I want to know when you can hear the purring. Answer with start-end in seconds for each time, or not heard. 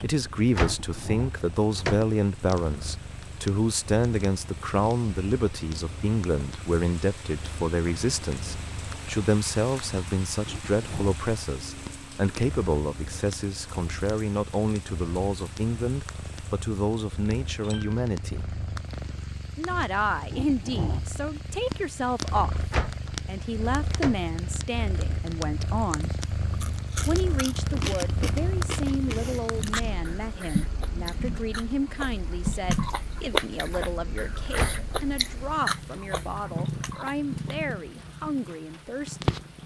0.0-39.6.